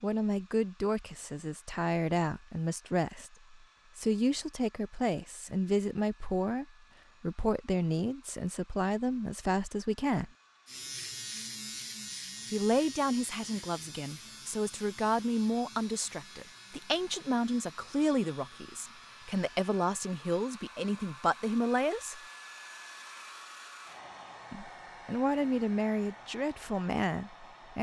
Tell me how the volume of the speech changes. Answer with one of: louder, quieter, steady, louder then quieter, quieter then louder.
steady.